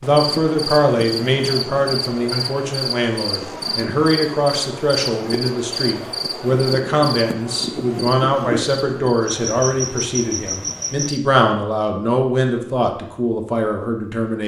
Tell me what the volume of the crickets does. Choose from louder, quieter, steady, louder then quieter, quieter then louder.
steady.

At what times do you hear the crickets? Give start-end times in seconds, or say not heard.
0.0-11.2.